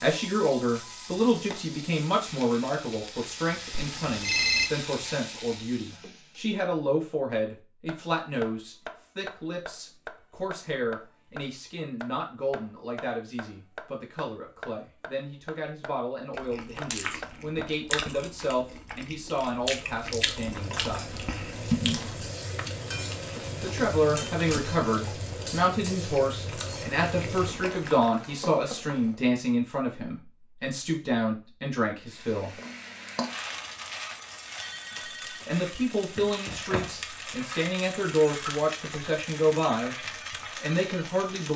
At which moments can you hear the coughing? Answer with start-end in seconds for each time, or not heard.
not heard.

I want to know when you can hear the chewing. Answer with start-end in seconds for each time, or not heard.
16.3-27.9.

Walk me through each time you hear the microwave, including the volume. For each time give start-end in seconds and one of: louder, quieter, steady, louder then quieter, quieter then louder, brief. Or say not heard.
not heard.